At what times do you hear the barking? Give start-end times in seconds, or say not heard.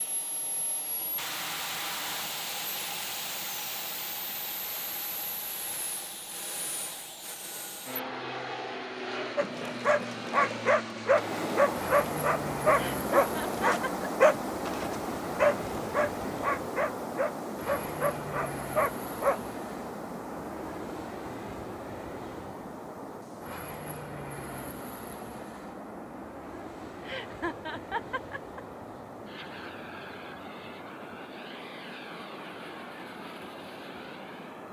9.3-19.4.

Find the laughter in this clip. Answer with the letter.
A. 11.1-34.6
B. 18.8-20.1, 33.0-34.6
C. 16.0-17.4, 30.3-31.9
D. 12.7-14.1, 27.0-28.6
D.